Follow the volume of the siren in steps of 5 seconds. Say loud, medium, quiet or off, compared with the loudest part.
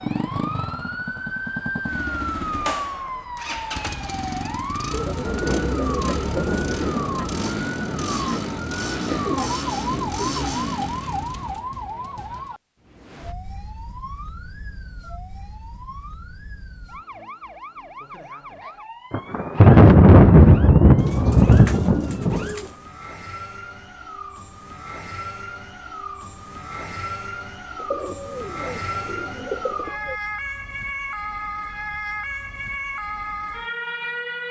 loud, loud, loud, medium, medium, loud, loud.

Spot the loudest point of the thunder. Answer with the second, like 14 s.
20 s.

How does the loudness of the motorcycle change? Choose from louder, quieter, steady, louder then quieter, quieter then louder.
steady.